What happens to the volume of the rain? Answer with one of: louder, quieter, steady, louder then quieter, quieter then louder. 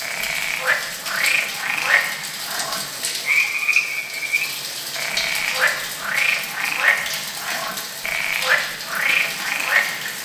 steady.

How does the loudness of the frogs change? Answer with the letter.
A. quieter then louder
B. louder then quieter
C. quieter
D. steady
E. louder
D.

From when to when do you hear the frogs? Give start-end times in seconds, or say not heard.
0.0-10.1.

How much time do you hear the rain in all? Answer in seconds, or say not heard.
10 s.